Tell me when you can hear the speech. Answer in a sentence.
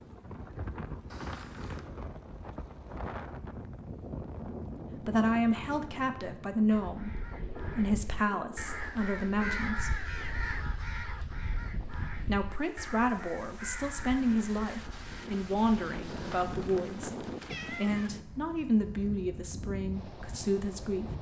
You can hear the speech from 5.0 to 10.1 s and from 12.2 to 21.1 s.